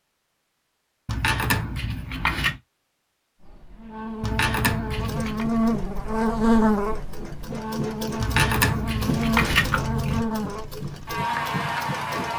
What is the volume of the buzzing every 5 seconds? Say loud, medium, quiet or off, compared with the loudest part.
medium, loud, loud.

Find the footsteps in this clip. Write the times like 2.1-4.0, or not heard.
not heard.